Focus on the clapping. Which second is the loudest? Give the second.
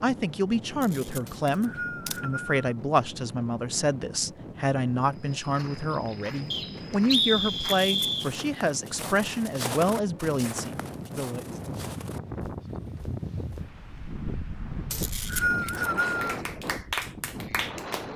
17 s.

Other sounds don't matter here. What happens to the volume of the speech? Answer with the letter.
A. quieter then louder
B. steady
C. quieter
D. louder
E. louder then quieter
B.